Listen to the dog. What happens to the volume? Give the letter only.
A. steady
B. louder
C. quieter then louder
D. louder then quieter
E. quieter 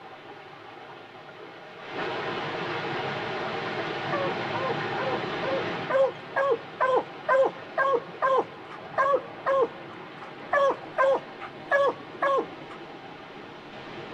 B.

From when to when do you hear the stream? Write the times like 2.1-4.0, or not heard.
0.0-14.1.